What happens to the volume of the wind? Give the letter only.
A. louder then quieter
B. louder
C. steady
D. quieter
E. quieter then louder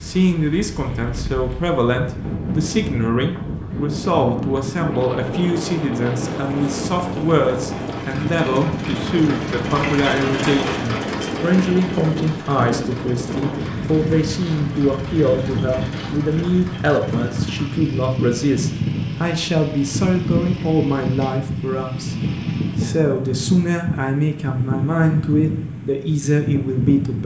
C.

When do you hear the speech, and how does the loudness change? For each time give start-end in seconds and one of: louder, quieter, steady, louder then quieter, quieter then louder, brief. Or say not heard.
0.0-27.2 steady.